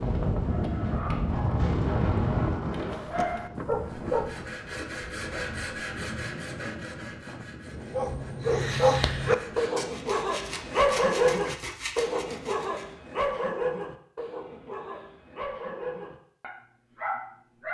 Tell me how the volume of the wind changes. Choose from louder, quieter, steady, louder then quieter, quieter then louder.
quieter.